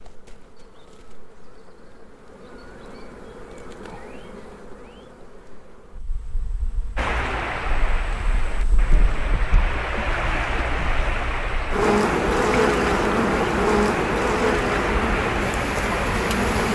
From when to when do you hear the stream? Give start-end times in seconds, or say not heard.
7.0-16.6.